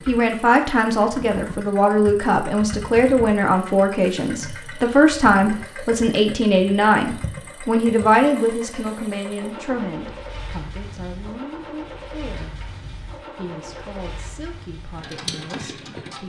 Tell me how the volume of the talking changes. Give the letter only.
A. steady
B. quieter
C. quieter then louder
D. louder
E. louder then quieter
B.